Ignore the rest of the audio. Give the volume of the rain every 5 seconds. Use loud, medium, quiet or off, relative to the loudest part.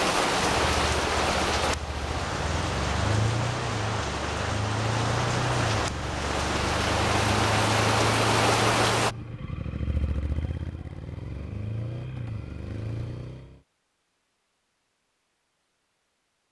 loud, loud, off, off.